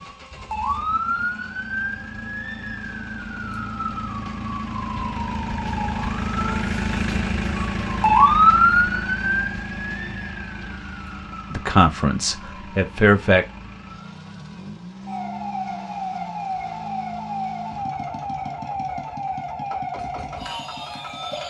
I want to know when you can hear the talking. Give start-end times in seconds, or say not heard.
11.5-13.4.